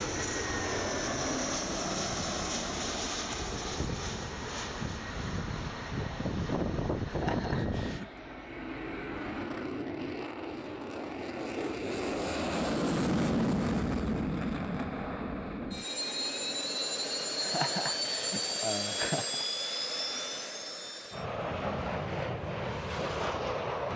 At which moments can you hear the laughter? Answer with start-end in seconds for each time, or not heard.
7.0-8.1, 17.4-19.4.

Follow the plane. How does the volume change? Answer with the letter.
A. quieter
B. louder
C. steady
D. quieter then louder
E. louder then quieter
C.